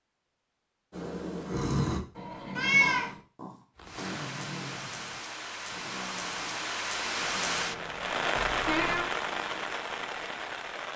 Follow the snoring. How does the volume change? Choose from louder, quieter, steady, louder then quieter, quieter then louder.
quieter.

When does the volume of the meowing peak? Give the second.
3 s.